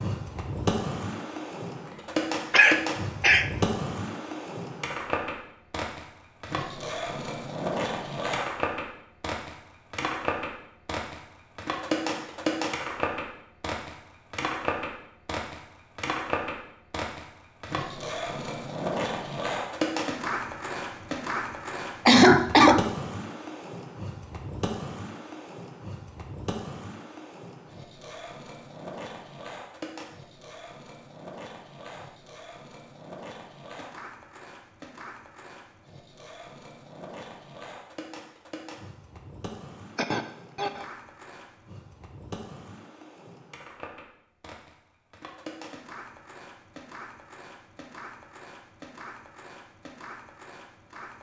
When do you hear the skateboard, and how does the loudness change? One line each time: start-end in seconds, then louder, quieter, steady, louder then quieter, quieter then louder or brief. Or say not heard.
0.0-51.1 quieter.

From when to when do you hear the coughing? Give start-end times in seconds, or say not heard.
2.5-3.5, 22.1-22.9, 40.0-40.9.